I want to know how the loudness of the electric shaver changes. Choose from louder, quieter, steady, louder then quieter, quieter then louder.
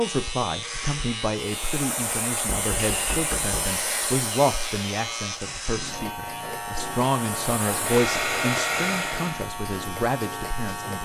steady.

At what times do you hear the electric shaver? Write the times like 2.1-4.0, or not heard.
0.0-10.9.